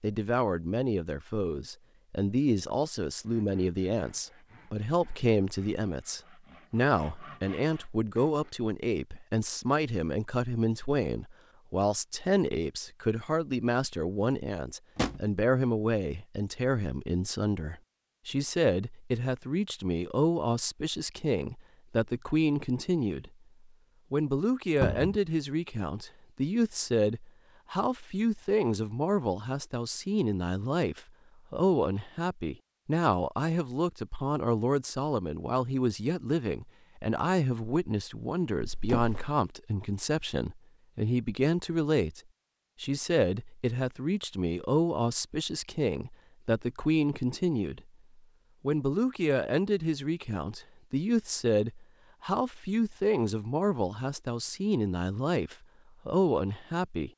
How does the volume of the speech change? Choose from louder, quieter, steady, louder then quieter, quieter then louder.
steady.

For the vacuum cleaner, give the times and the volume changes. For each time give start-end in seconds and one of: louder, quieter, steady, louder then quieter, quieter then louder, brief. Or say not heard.
not heard.